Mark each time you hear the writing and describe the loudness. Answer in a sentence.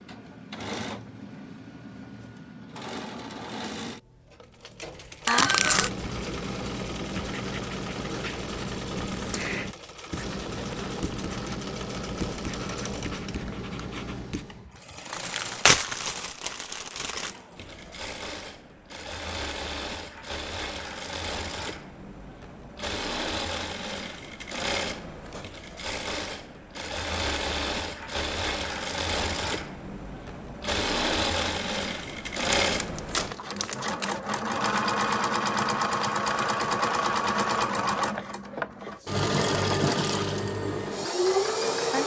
The writing can be heard from 5.3 to 14.7 s, at a steady volume.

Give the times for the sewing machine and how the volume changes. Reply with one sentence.
The sewing machine can be heard from 0.0 to 42.0 s, getting louder.